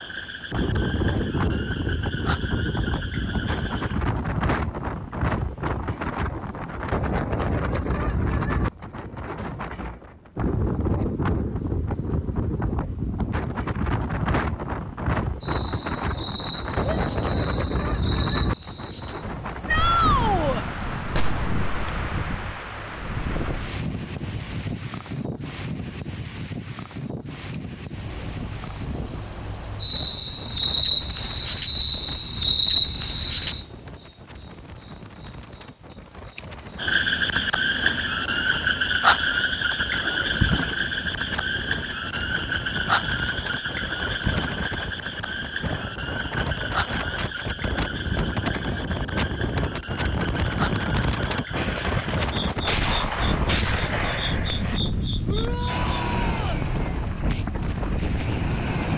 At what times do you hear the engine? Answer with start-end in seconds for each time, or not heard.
55.6-58.9.